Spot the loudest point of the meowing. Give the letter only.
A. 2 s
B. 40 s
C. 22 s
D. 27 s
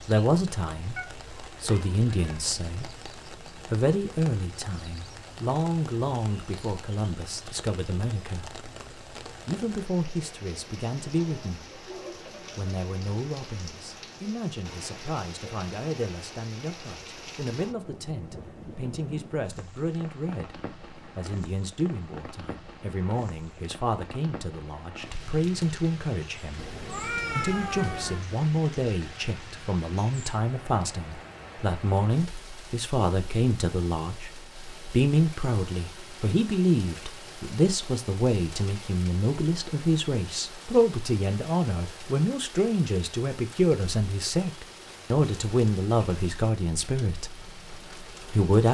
D.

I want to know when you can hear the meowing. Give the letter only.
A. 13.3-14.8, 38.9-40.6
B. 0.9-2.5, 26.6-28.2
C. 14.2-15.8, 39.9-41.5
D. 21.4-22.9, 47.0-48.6
B.